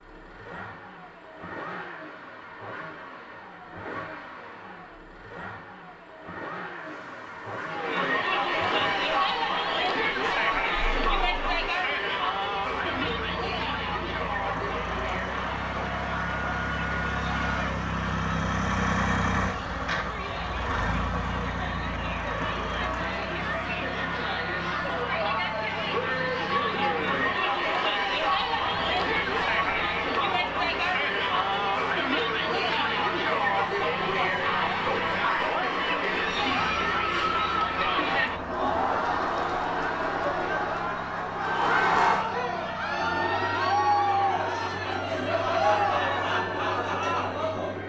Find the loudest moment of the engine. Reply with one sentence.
The loudest moment of the engine is at 19 seconds.